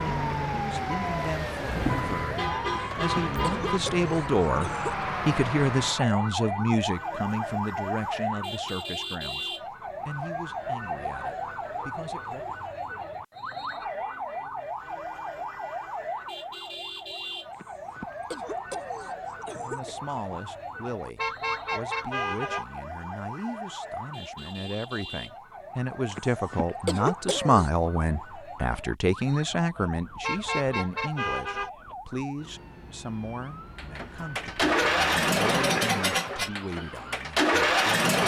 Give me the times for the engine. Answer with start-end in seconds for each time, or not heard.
0.0-1.6, 33.8-38.2.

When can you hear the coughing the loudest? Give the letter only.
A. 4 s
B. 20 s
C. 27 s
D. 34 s
C.